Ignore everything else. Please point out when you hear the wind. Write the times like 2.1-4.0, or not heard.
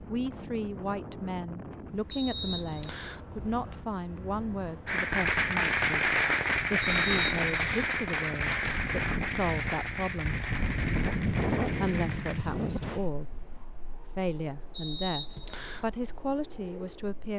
0.0-17.3.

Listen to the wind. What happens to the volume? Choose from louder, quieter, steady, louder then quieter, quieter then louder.
louder then quieter.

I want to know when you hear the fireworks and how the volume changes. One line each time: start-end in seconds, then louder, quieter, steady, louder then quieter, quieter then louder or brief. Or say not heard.
4.8-12.4 quieter.